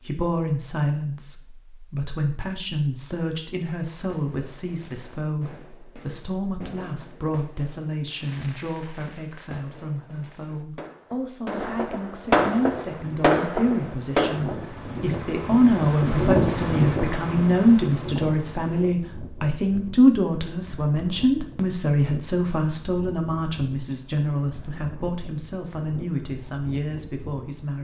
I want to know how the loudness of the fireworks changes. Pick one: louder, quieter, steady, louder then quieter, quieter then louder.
louder.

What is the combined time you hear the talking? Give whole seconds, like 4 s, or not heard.
28 s.